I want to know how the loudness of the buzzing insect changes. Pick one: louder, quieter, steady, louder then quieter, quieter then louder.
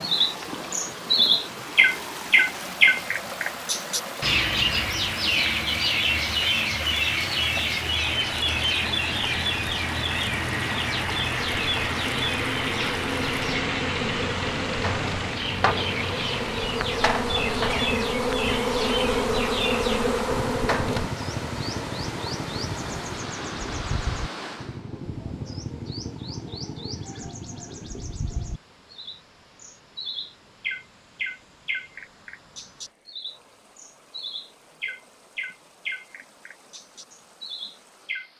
louder.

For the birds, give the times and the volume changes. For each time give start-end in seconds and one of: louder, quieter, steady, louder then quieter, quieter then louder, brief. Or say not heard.
0.0-38.3 quieter.